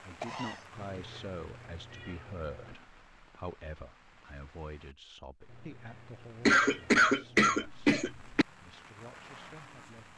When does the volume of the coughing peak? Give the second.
7 s.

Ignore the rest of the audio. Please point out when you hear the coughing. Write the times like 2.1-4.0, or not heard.
0.2-1.2, 6.5-8.4.